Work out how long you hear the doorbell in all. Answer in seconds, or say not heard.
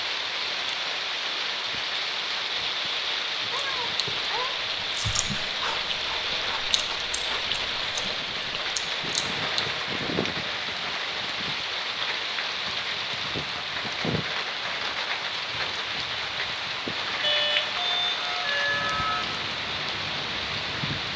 2 s.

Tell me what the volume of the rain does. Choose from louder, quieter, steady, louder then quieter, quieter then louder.
steady.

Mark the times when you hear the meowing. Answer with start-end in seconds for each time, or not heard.
3.5-4.5.